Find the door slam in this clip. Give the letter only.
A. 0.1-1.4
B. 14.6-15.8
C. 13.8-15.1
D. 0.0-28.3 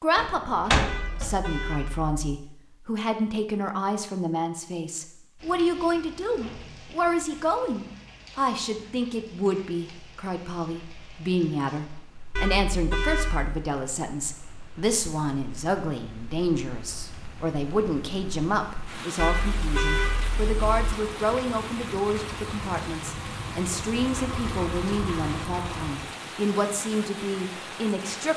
A.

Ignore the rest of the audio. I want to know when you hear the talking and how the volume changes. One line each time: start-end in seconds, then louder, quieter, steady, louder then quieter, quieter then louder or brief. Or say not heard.
0.0-28.3 steady.